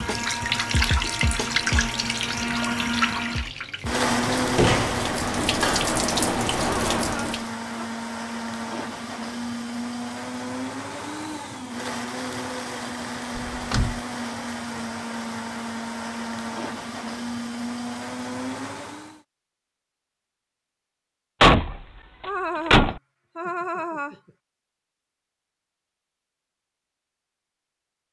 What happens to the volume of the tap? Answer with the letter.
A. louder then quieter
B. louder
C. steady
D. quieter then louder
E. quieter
D.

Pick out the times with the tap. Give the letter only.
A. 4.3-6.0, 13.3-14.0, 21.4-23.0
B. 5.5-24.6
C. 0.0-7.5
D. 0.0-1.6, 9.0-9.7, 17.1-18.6
C.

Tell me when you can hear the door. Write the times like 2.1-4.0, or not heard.
4.3-6.0, 13.3-14.0, 21.4-23.0.